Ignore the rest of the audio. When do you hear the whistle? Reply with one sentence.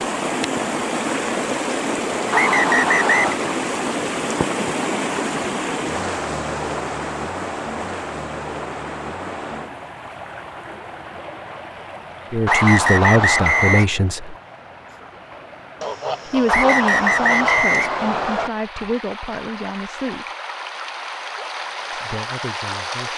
The whistle can be heard from 2.3 to 3.4 s, from 12.4 to 13.8 s and from 16.4 to 18.5 s.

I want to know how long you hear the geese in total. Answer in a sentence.
The geese can be heard for 2 seconds in total.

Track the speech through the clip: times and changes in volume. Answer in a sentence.
The speech can be heard briefly from 12.3 to 14.3 s; from 16.2 to 20.2 s, getting quieter; and briefly from 21.9 to 23.1 s.